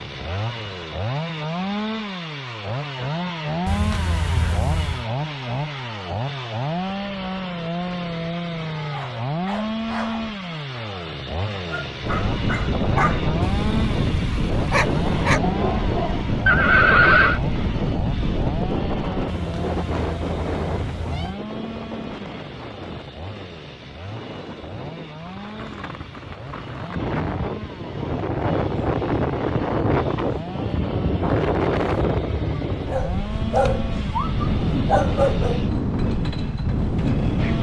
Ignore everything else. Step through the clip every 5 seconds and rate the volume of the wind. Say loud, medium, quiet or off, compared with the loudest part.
off, off, loud, loud, medium, loud, loud, loud.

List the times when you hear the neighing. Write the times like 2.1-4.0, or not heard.
16.4-17.4.